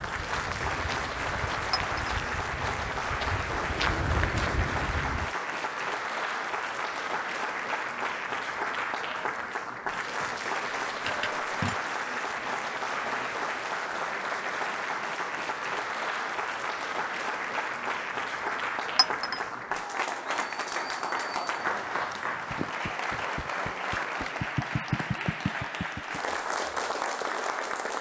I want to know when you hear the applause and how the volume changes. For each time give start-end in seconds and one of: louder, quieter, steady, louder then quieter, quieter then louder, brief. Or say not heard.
0.0-27.9 steady.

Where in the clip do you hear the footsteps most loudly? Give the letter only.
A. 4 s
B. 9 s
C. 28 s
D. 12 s
A.